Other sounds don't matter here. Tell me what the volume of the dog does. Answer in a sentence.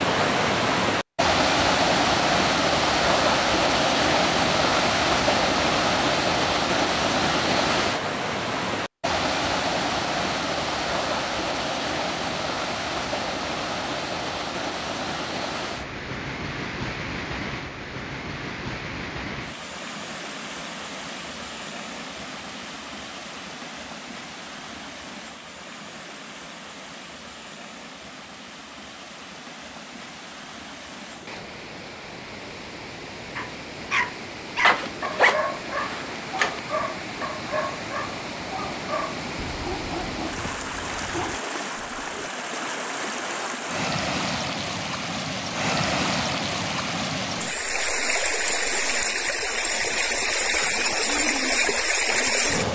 The volume of the dog goes down.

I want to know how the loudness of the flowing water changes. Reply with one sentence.
The volume of the flowing water goes down, then up.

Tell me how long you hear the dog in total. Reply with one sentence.
You can hear the dog for 9 seconds altogether.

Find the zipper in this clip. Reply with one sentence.
You can hear the zipper from 34.6 to 36.6 s.